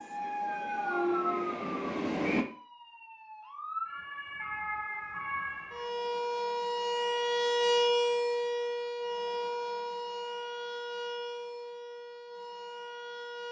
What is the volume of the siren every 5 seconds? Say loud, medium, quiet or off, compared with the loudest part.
medium, loud, medium.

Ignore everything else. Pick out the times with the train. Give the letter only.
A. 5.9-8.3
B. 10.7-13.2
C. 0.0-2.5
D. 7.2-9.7
C.